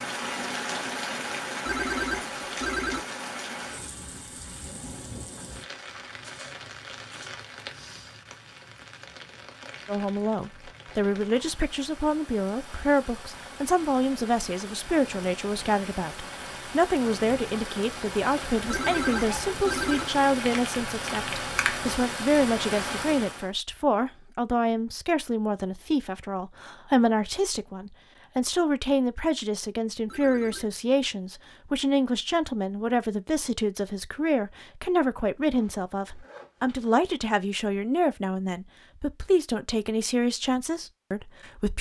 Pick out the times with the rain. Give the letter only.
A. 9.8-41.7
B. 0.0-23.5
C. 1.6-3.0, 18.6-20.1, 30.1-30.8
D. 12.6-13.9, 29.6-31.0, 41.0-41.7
B.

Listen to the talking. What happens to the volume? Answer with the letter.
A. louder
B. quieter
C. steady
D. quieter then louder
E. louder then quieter
C.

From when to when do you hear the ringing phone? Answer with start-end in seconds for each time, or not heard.
1.6-3.0, 18.6-20.1, 30.1-30.8.